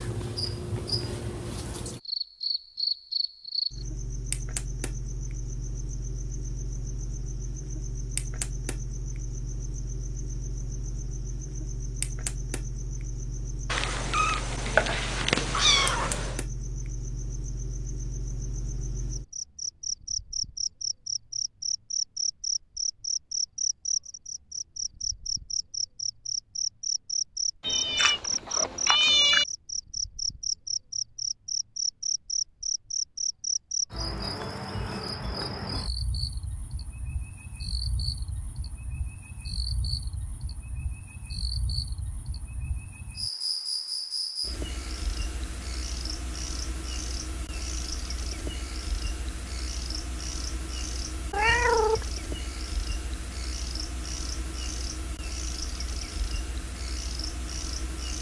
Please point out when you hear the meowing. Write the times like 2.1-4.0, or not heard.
13.7-16.4, 27.6-29.4, 51.3-52.0.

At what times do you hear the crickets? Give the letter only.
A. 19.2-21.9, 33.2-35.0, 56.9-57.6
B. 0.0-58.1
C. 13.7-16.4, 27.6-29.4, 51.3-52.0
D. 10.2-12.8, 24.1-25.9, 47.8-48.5
B.